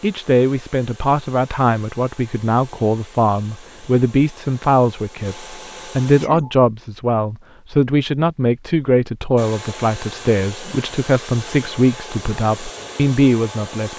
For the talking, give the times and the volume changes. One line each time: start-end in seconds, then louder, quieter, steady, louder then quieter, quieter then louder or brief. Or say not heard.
0.0-13.9 steady.